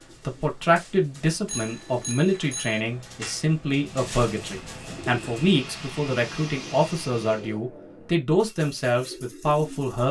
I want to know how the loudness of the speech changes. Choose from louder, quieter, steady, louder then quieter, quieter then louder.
steady.